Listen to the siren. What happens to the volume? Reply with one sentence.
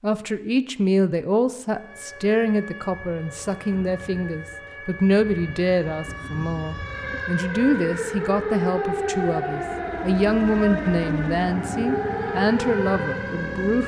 The loudness of the siren goes up.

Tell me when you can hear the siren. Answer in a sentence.
You can hear the siren from 1.6 to 13.8 s.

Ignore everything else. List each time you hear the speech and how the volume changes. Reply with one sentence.
The speech can be heard from 0.0 to 13.8 s, at a steady volume.